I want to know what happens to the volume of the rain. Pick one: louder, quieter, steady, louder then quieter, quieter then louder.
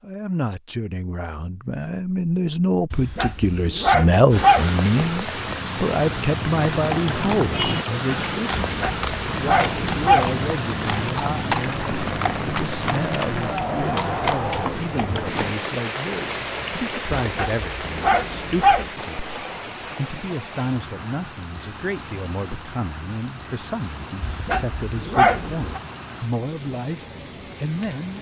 quieter.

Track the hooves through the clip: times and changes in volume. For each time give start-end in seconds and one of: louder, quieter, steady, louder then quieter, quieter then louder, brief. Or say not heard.
6.7-15.6 steady.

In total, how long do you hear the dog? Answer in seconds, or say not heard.
7 s.